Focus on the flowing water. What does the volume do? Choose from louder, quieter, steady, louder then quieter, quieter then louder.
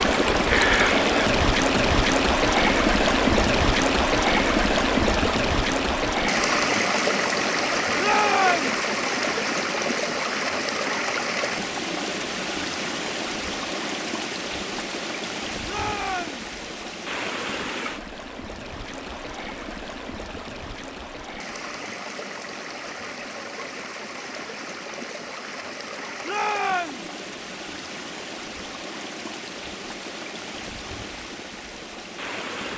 quieter.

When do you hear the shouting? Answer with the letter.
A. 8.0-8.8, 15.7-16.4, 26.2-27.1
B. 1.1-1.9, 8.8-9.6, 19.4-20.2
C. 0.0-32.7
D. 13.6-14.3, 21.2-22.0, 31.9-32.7
A.